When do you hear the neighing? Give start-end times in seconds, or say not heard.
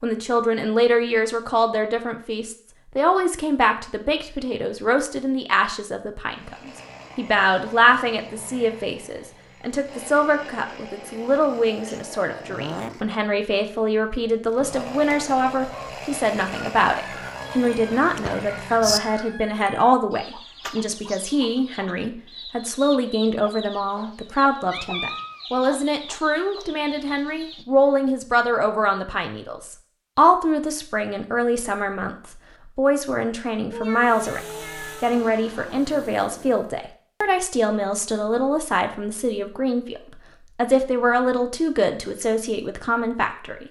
18.0-19.0.